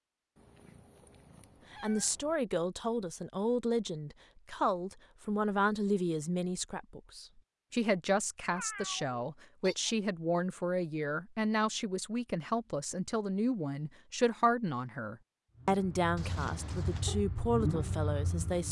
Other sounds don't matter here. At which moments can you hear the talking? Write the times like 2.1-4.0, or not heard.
1.7-18.6.